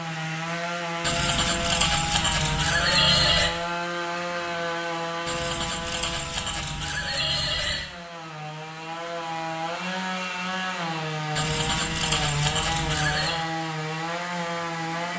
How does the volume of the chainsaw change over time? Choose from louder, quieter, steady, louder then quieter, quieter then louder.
quieter then louder.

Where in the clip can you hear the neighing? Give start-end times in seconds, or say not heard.
1.0-3.5, 5.2-7.9, 11.3-13.4.